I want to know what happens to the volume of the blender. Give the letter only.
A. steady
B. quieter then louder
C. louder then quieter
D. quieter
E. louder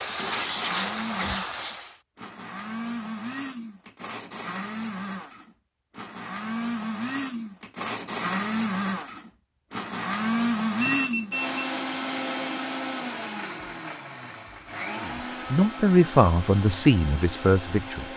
C.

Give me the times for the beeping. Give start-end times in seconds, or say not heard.
10.8-11.7.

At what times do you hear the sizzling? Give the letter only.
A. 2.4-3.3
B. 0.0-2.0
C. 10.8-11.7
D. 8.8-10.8
B.